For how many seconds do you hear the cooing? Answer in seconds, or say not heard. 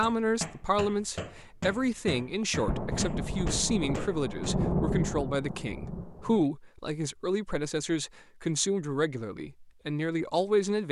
not heard.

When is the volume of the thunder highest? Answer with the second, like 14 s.
5 s.